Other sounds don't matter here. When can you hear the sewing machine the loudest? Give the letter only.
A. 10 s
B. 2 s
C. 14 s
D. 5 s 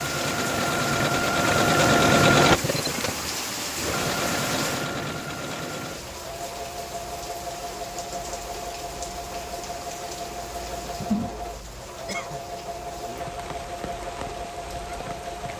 B.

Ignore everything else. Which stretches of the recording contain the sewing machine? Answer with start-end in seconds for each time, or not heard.
0.0-15.5.